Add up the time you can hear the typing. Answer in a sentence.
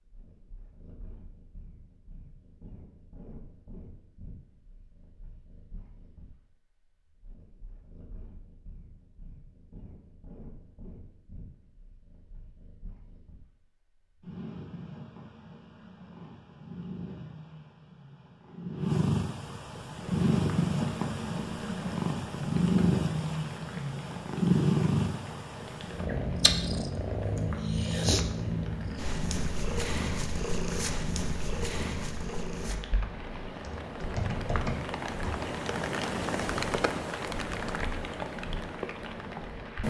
You can hear the typing for 2 seconds altogether.